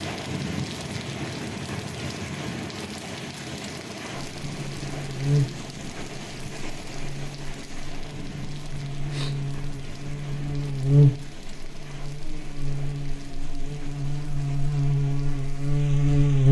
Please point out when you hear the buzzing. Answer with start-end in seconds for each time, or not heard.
4.3-16.4.